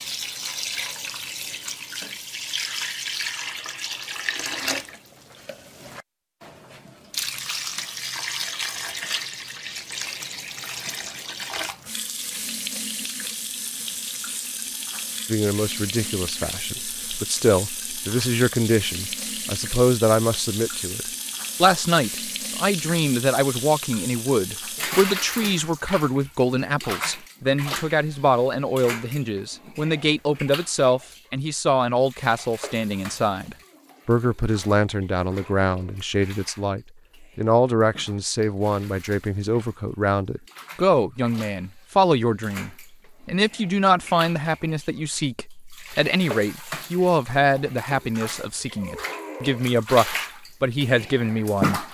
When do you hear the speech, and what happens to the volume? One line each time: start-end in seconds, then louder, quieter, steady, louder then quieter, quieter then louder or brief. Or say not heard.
15.3-51.8 steady.